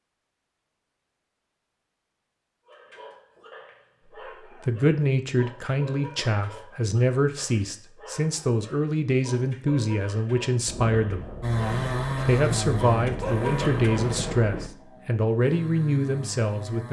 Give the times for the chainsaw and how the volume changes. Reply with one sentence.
The chainsaw can be heard from 11.4 to 16.8 s, getting quieter then louder.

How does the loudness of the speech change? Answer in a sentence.
The volume of the speech stays about the same.